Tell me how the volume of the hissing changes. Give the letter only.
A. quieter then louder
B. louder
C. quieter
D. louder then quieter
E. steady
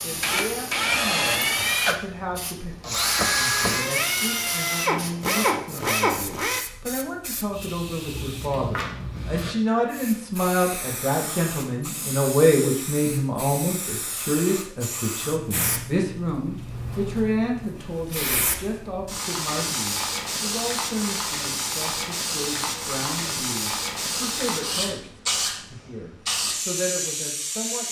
B.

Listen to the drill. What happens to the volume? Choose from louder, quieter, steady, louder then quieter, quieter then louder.
steady.